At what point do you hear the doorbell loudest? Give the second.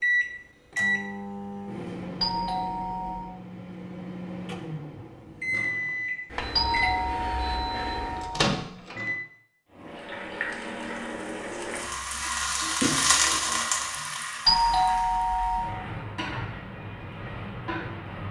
15 s.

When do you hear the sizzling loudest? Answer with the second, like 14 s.
13 s.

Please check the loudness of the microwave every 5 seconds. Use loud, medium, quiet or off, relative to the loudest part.
loud, loud, off, off.